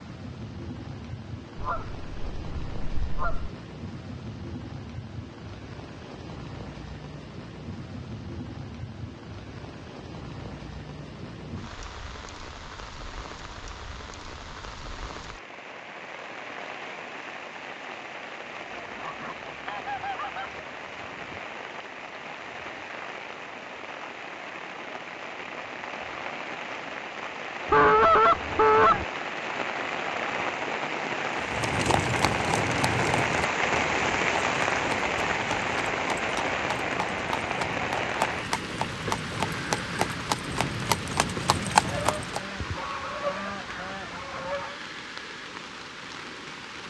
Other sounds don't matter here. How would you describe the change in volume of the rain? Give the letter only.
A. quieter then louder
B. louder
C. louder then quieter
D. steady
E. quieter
C.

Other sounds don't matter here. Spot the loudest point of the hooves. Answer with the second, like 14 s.
42 s.